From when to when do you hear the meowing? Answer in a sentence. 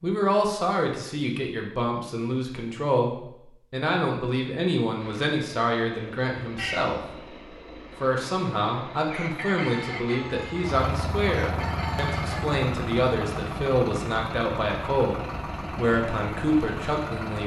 The meowing can be heard from 6.5 to 7.2 s.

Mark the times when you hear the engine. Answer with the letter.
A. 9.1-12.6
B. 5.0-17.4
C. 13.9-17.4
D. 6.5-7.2
B.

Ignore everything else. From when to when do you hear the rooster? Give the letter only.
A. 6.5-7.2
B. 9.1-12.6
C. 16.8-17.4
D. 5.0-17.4
B.